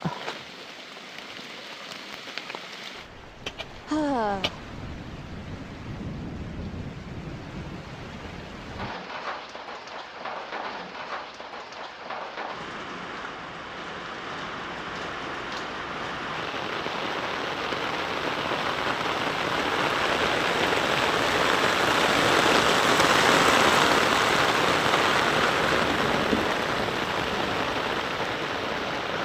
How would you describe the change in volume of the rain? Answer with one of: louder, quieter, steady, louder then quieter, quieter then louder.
louder.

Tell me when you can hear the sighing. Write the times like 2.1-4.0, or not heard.
3.9-4.6.